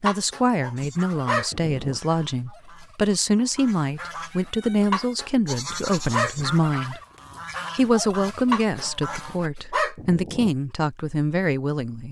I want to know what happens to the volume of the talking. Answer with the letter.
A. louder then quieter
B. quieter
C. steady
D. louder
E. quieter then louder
C.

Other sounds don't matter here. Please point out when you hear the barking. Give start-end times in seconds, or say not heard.
0.1-2.0, 4.9-6.5, 8.5-10.5.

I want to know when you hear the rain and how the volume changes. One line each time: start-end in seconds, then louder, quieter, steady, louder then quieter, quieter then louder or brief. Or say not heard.
not heard.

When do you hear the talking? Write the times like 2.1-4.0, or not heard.
0.0-7.0, 7.8-12.0.